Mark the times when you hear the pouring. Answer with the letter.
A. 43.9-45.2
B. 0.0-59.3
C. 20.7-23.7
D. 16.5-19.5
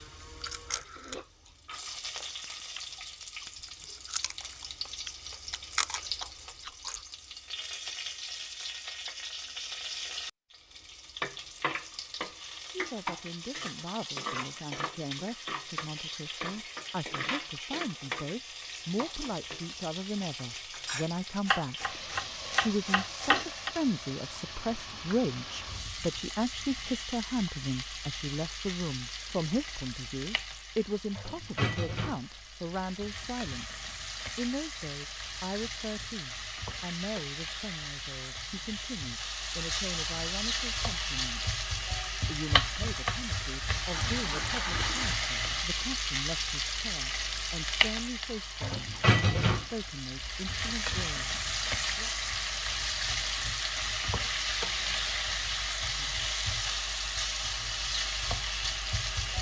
A.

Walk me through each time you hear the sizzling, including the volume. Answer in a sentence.
The sizzling can be heard from 0.0 to 59.3 s, getting louder.